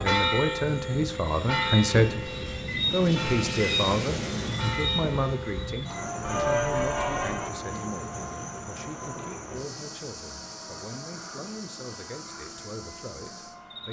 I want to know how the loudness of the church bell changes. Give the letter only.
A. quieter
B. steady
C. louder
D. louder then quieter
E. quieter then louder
E.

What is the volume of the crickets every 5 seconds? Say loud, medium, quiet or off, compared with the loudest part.
loud, medium, medium.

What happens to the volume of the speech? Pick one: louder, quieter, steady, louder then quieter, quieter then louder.
quieter.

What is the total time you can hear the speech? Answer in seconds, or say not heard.
14 s.